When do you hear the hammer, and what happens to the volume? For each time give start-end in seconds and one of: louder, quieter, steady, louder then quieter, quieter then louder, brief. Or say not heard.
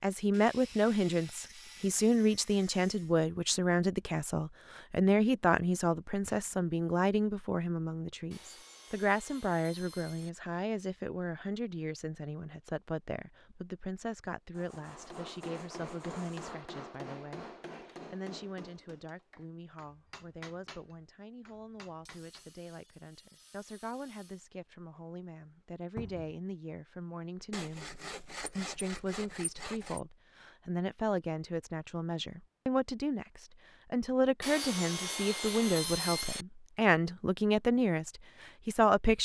14.8-22.4 quieter.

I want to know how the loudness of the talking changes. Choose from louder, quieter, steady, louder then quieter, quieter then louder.
quieter then louder.